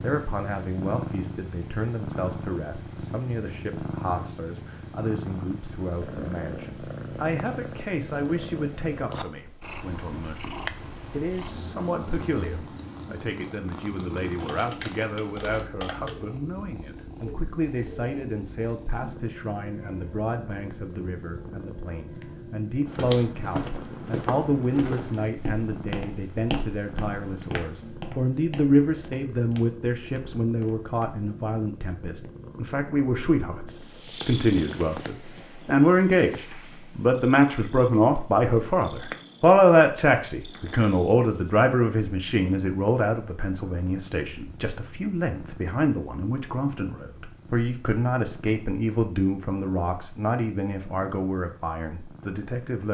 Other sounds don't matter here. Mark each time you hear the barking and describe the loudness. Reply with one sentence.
You can't hear the barking here.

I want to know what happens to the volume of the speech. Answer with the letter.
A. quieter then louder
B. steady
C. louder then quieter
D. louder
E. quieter
C.